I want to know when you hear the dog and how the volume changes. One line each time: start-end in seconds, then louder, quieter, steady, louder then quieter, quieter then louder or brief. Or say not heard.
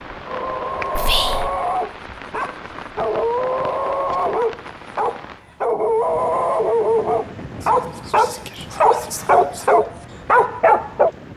0.2-11.1 louder.